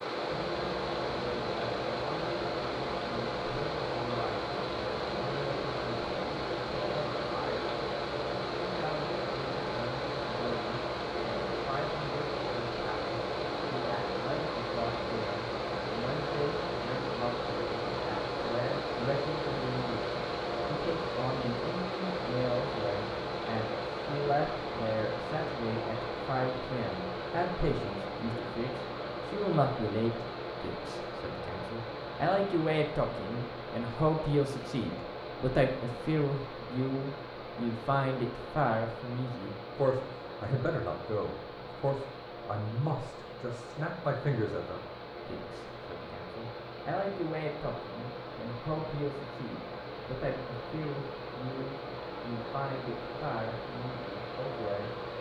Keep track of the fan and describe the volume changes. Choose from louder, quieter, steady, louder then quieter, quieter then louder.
quieter.